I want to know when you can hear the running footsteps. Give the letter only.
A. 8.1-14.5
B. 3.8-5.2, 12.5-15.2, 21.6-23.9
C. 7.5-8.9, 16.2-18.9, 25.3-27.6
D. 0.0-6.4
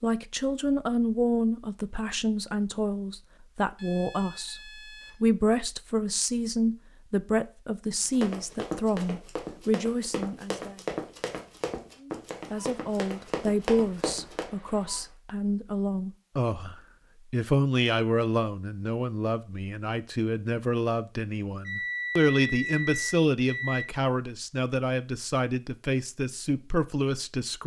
A.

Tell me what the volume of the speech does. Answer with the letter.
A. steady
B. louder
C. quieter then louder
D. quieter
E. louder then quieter
A.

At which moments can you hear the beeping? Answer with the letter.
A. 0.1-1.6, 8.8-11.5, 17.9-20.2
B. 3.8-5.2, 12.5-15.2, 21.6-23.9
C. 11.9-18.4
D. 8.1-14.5
B.